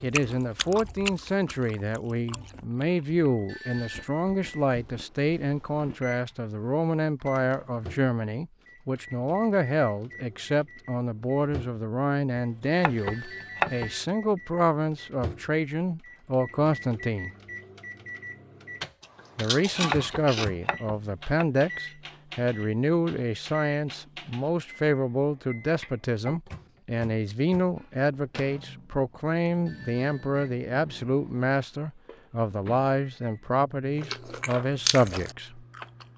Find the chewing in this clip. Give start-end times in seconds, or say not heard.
0.0-6.1, 19.0-20.4, 34.0-36.1.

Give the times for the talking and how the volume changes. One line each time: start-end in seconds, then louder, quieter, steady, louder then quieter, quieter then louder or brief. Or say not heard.
0.0-17.3 steady
19.4-35.6 steady.